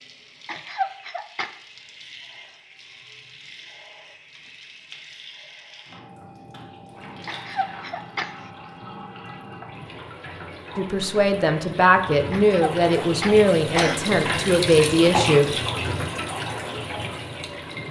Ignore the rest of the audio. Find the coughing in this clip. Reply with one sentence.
The coughing can be heard from 0.5 to 1.5 s, from 7.2 to 8.4 s and from 12.3 to 14.0 s.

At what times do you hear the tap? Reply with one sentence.
The tap can be heard from 0.0 to 17.8 s.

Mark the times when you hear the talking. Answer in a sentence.
You can hear the talking from 10.8 to 15.5 s.